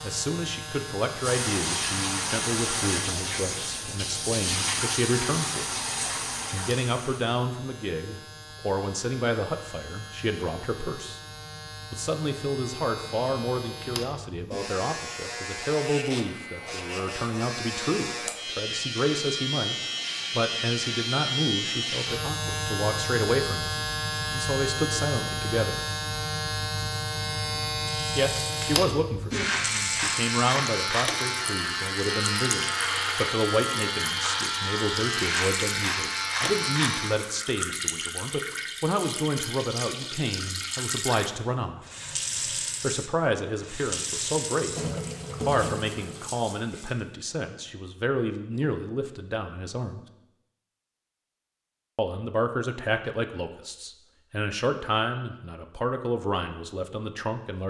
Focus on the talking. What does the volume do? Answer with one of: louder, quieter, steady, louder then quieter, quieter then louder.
steady.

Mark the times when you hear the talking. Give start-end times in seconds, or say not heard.
0.0-5.8, 6.5-11.2, 11.9-25.8, 28.1-41.8, 42.8-50.0, 52.0-57.6.